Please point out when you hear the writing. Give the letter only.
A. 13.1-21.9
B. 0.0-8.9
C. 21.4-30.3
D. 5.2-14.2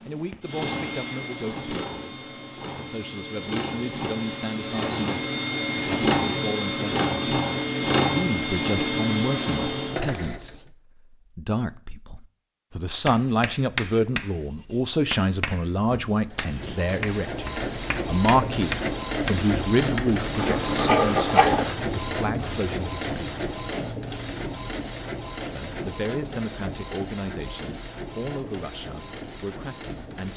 A.